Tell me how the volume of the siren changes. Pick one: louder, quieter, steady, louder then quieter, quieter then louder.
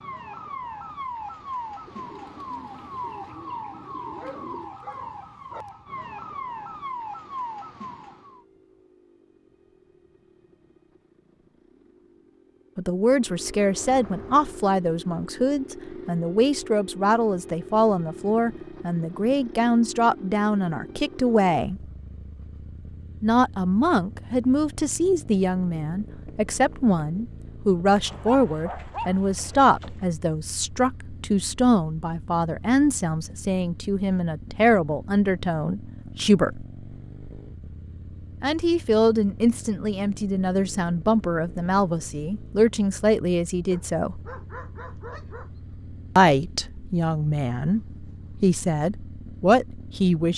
steady.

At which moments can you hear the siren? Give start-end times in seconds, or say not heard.
0.0-8.4.